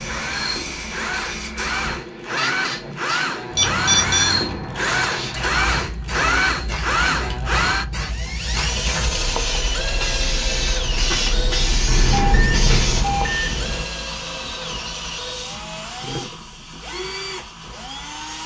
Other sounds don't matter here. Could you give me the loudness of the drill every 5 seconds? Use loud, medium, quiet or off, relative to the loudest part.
loud, loud, medium, medium.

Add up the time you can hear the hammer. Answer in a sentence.
You can't hear the hammer here.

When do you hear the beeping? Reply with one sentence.
You can hear the beeping from 3.5 to 4.3 s and from 11.8 to 13.8 s.